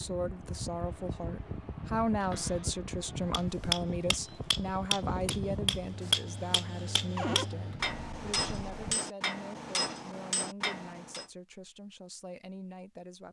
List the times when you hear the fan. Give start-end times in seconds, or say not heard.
0.0-9.0.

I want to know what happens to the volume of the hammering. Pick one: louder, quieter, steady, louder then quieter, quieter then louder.
quieter.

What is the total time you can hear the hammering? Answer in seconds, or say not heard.
8 s.